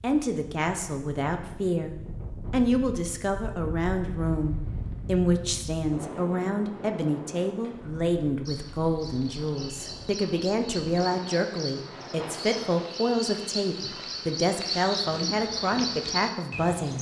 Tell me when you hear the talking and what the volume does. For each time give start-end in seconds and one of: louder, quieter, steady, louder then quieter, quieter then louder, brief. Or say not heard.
0.0-16.9 steady.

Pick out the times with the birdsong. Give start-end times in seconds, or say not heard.
8.4-16.9.